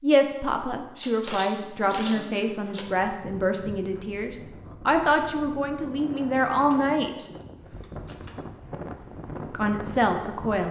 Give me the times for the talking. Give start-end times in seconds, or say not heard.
0.0-7.3, 9.5-10.6.